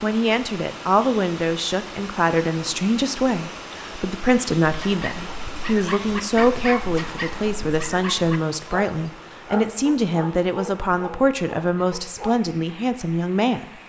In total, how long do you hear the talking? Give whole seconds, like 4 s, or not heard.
14 s.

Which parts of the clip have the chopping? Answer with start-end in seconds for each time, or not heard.
not heard.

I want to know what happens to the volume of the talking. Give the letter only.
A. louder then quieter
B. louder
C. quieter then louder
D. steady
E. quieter
D.